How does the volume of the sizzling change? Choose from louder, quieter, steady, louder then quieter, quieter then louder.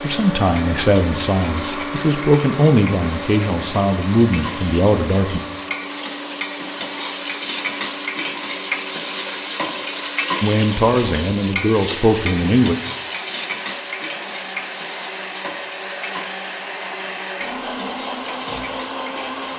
louder then quieter.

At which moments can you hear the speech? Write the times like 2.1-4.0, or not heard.
0.0-5.4, 10.4-12.8.